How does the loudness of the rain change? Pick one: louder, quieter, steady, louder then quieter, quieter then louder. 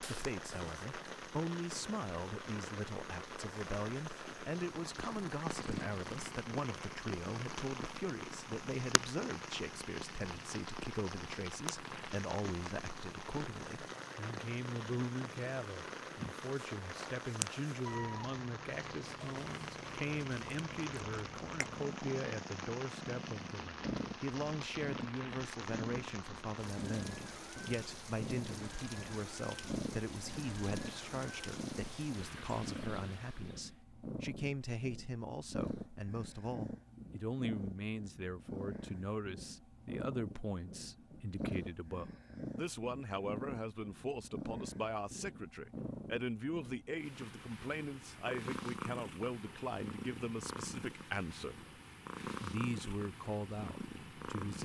steady.